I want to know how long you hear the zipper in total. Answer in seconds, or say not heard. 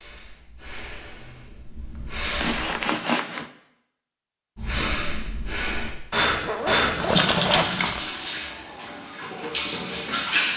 3 s.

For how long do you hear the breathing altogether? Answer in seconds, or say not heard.
5 s.